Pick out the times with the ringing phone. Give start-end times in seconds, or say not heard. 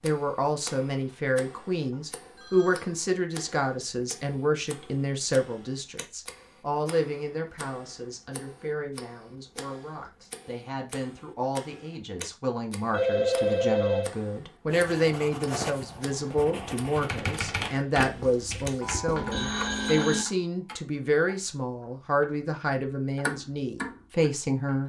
1.8-2.9, 12.9-14.1, 19.1-20.2.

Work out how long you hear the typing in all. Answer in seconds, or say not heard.
2 s.